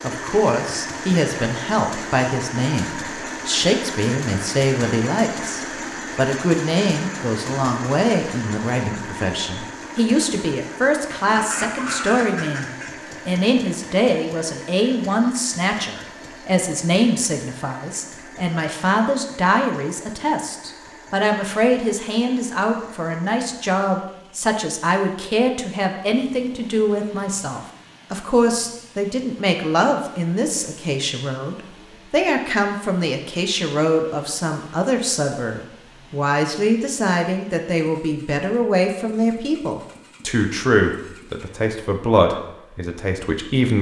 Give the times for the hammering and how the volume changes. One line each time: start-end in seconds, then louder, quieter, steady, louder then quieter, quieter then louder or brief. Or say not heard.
not heard.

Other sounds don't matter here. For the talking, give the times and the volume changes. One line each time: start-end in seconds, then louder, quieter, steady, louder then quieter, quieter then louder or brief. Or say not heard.
0.0-43.7 steady.